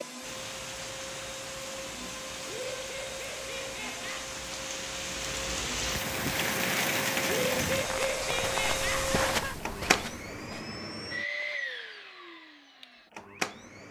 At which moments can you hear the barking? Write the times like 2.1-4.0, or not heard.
not heard.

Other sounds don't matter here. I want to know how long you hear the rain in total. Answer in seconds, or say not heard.
9 s.